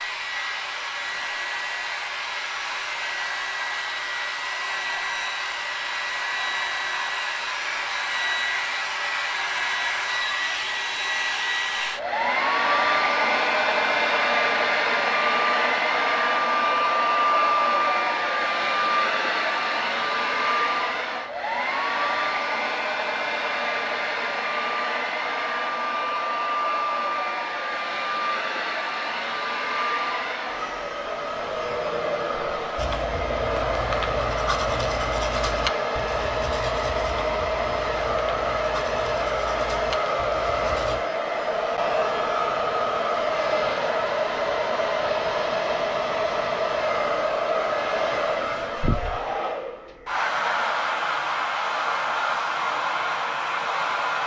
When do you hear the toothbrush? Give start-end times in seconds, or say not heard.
32.8-41.0.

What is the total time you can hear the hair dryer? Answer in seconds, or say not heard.
54 s.